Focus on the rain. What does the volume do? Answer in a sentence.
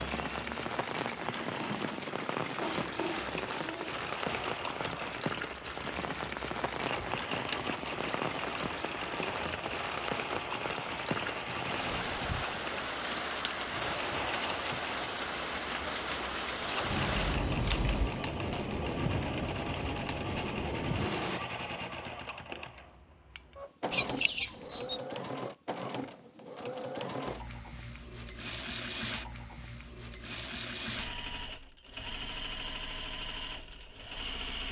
The volume of the rain stays about the same.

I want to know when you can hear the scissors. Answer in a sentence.
The scissors can be heard from 7.3 to 8.3 s, from 16.9 to 18.1 s and from 23.9 to 25.0 s.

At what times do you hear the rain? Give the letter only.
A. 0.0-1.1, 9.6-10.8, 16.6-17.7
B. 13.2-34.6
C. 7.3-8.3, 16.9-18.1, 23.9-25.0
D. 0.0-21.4
D.